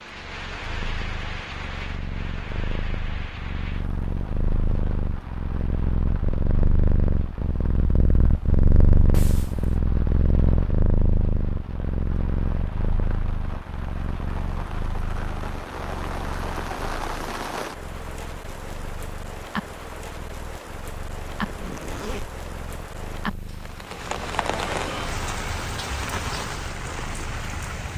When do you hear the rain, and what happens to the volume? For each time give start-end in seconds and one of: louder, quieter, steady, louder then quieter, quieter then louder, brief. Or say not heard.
0.0-27.9 quieter then louder.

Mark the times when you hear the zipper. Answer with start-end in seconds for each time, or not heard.
9.1-9.8, 21.4-22.4.